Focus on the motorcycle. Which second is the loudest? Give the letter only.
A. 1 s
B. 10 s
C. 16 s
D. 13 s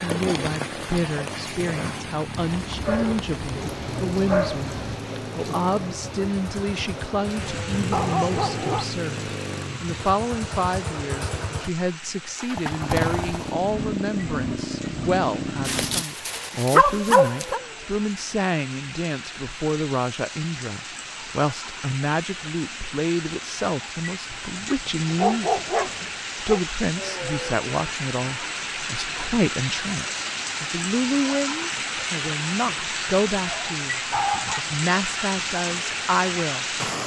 D.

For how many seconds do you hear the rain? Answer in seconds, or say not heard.
37 s.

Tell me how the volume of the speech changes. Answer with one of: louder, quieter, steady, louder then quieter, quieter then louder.
steady.